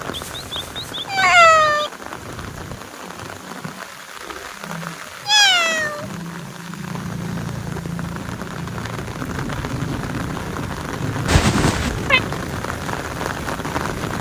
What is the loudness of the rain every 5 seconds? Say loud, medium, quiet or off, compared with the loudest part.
medium, loud, loud.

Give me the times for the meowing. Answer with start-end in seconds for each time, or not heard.
0.1-1.9, 5.2-6.0, 11.2-12.2.